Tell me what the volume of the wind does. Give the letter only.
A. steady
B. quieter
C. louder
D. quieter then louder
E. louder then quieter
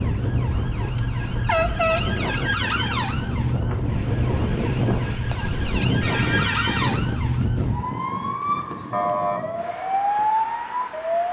E.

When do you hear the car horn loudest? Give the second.
2 s.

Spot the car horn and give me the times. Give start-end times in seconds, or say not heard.
0.5-2.2, 6.0-7.0.